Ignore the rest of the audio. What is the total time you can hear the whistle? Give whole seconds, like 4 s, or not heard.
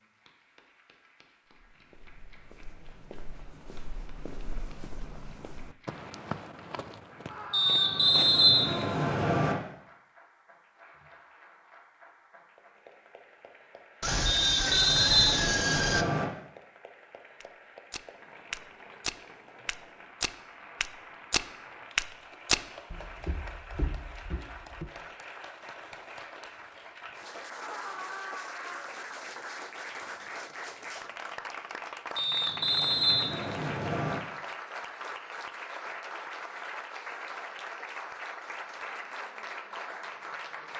6 s.